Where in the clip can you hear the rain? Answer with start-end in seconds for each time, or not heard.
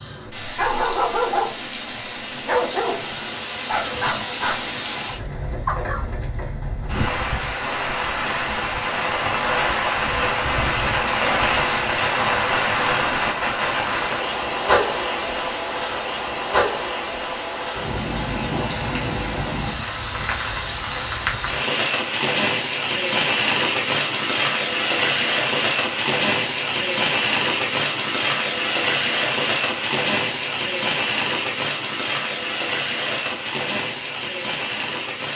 0.0-35.3.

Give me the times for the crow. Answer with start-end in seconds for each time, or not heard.
not heard.